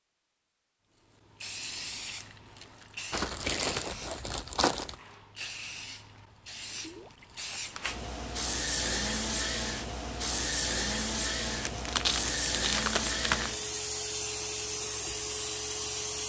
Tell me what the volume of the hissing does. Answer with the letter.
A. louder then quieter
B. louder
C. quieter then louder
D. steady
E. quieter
B.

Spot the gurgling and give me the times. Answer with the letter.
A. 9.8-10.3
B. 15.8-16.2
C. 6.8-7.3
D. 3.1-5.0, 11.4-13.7
C.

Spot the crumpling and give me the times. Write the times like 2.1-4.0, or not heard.
3.1-5.0, 11.4-13.7.